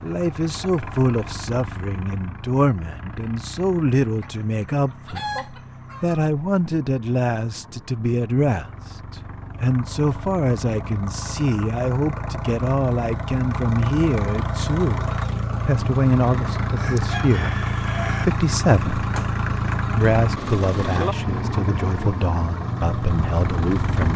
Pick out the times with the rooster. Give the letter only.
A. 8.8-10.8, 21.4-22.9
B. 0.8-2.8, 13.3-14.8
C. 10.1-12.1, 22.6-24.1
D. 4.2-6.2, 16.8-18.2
D.